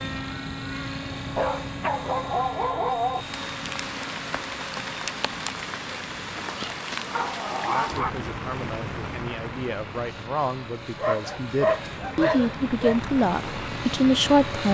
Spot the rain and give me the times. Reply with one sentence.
The rain can be heard from 3.1 to 14.6 s.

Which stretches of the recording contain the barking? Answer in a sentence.
You can hear the barking from 1.3 to 3.2 s, from 6.3 to 8.1 s and from 10.9 to 12.9 s.